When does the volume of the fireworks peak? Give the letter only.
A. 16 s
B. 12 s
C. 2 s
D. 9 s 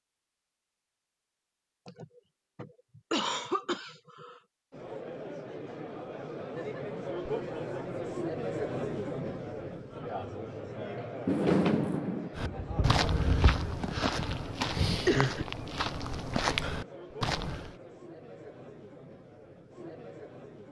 B.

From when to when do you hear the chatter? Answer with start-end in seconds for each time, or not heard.
4.7-20.6.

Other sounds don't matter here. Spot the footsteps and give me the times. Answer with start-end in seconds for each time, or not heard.
12.3-17.8.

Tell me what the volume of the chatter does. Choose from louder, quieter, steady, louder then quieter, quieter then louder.
quieter.